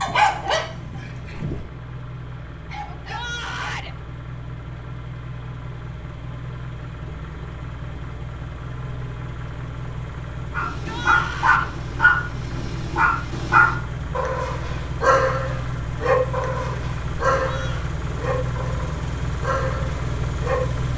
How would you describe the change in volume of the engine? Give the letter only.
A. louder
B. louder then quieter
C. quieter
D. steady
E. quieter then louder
A.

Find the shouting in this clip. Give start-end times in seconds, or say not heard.
2.9-4.0, 10.7-11.7, 17.4-17.9.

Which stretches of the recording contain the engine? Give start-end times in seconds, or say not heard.
0.0-20.9.